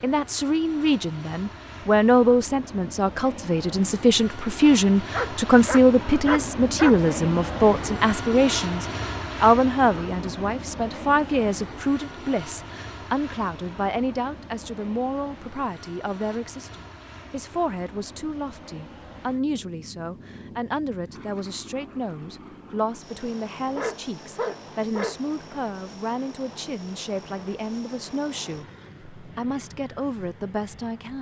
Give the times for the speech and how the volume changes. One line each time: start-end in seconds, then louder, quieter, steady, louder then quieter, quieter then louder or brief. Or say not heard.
0.0-31.1 quieter.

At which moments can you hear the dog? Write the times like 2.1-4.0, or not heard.
5.1-7.1, 23.8-25.1.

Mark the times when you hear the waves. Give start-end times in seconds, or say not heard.
not heard.